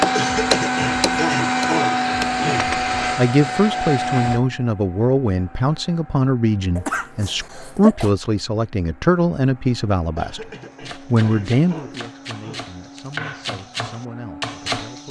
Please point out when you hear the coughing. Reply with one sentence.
You can hear the coughing from 0.1 to 2.7 s, from 6.8 to 8.1 s and from 10.2 to 12.7 s.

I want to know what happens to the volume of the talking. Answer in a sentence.
The loudness of the talking goes down.